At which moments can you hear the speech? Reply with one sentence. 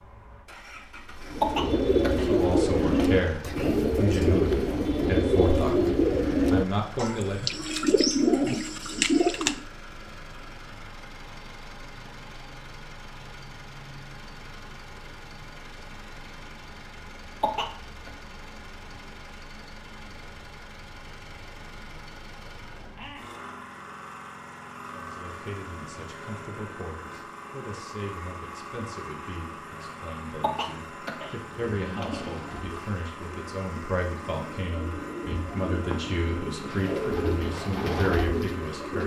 The speech can be heard from 2.2 to 7.6 s and from 24.9 to 39.0 s.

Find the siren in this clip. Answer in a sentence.
The siren can't be heard in this clip.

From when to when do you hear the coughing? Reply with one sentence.
You can hear the coughing from 1.4 to 3.2 s, from 17.4 to 18.1 s and from 30.4 to 32.8 s.